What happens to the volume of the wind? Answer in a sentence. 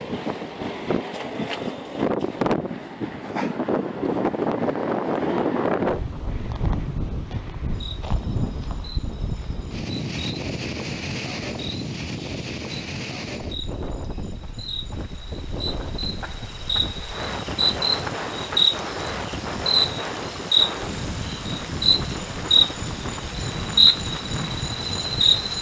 The loudness of the wind goes down.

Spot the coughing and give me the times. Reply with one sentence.
The coughing can't be heard in this clip.